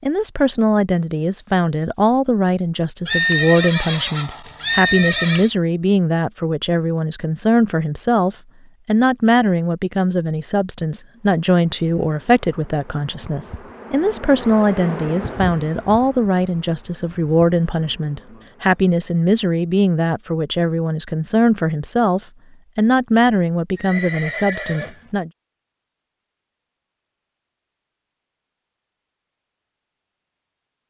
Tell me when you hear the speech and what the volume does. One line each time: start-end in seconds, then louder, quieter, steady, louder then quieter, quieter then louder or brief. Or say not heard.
0.0-25.3 steady.